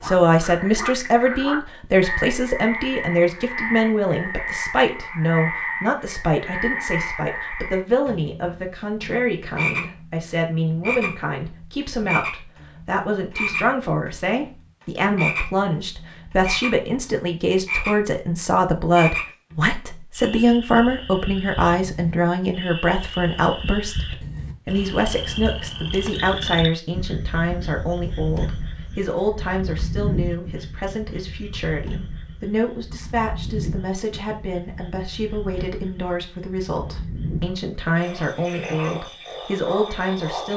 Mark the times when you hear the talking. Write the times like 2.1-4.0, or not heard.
0.0-40.5.